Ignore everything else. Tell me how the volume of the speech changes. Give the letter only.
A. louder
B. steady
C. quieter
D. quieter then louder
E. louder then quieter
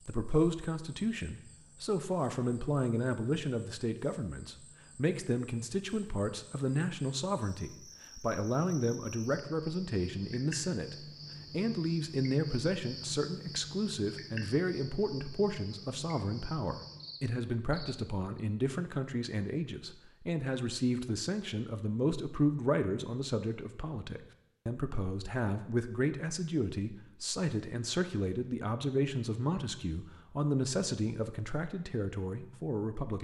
B.